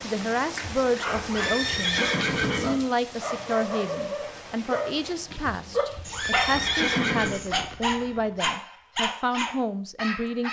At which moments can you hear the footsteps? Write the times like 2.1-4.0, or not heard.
not heard.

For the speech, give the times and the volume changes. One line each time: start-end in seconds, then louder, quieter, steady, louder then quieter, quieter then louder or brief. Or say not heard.
0.0-10.4 steady.